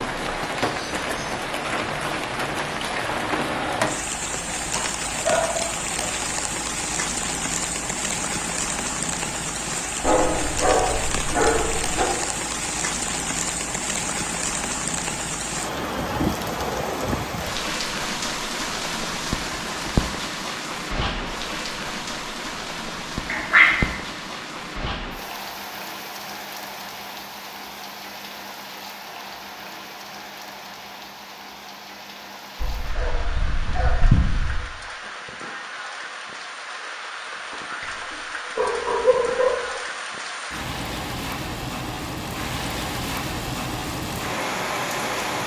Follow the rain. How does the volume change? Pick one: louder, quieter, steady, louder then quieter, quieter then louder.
quieter then louder.